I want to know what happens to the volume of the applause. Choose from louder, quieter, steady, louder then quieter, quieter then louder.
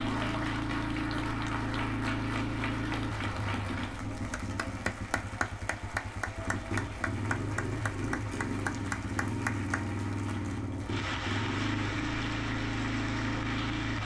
steady.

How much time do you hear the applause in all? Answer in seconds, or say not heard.
14 s.